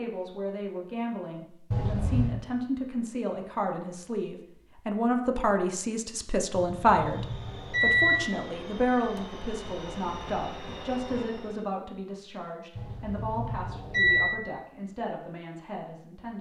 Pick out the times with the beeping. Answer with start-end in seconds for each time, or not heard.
1.7-2.4, 6.5-8.2, 12.8-14.3.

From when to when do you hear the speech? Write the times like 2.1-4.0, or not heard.
0.0-16.3.